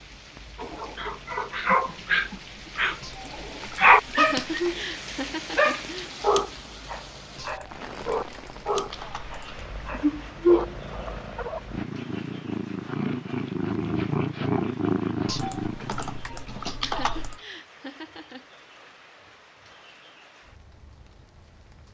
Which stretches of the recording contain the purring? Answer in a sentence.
You can hear the purring from 0.0 to 16.2 s.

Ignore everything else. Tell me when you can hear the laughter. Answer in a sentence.
The laughter can be heard from 4.2 to 6.1 s and from 16.8 to 18.4 s.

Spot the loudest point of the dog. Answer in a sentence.
The volume of the dog peaks at 4 seconds.